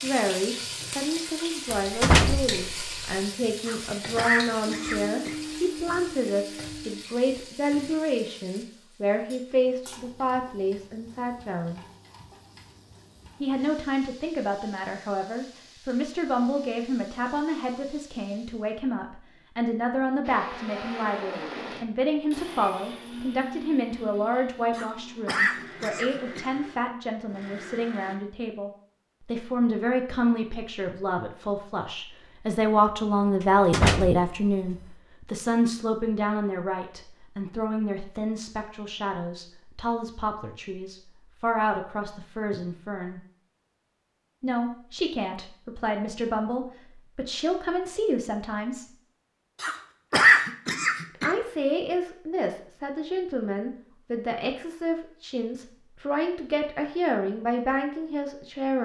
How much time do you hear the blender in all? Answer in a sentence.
You can hear the blender for 10 seconds altogether.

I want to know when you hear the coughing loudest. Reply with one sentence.
The loudest moment of the coughing is at 50 seconds.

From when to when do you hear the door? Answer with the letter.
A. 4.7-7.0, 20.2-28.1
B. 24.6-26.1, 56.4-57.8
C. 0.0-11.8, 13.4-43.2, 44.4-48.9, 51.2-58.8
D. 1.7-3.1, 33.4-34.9
D.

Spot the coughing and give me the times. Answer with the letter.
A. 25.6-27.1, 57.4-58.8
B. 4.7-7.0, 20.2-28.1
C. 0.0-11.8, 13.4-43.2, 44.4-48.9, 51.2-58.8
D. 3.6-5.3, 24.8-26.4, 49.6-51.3
D.